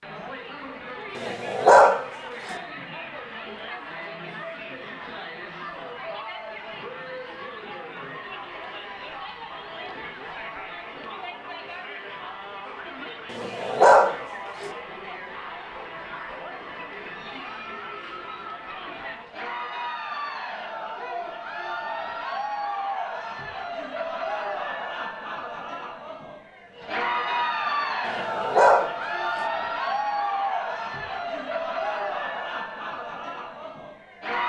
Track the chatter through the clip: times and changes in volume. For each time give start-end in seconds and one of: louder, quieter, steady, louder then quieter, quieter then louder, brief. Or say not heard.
0.0-34.4 louder.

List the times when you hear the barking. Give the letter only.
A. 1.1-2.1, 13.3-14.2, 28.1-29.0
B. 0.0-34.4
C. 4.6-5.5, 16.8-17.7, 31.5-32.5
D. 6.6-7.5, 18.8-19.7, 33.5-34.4
A.